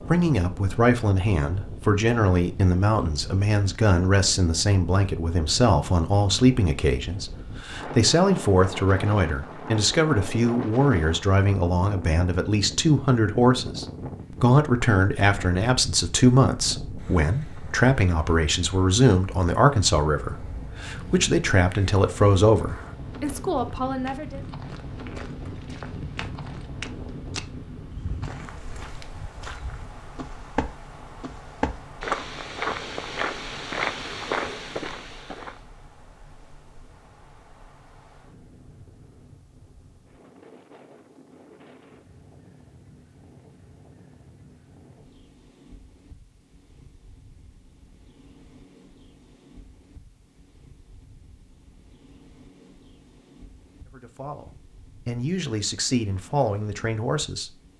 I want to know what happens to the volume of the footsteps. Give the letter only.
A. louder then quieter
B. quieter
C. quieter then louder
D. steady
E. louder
E.